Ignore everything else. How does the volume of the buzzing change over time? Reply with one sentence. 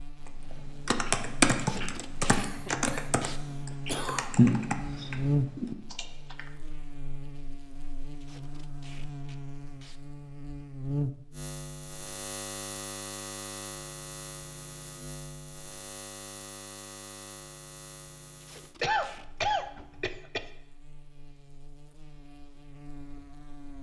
The volume of the buzzing goes up, then down.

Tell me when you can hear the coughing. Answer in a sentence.
You can hear the coughing from 2.3 to 3.0 s, from 3.7 to 4.3 s and from 18.8 to 20.4 s.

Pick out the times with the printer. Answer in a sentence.
You can't hear the printer here.